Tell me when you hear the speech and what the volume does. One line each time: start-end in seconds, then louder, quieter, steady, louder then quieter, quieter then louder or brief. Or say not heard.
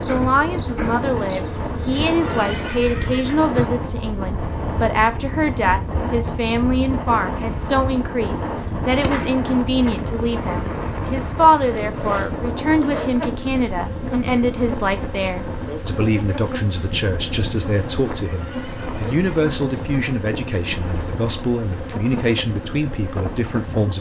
0.1-23.9 steady.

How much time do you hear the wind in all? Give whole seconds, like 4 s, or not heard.
24 s.